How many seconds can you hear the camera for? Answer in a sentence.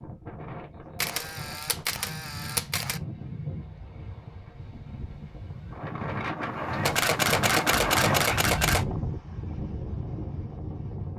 The camera can be heard for 4 seconds in total.